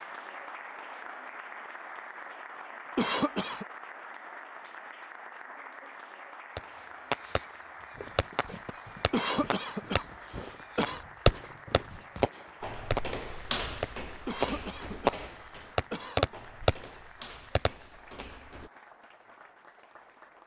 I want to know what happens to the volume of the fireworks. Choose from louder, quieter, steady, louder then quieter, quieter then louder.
louder.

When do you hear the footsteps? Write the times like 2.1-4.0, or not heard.
7.9-18.7.